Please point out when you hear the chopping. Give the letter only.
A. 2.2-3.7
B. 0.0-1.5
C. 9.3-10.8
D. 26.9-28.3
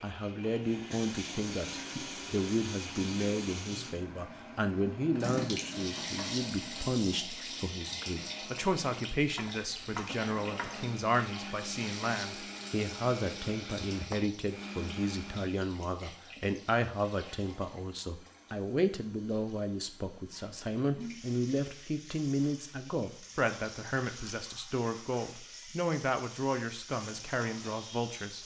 C.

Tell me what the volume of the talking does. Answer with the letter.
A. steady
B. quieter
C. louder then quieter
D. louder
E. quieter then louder
A.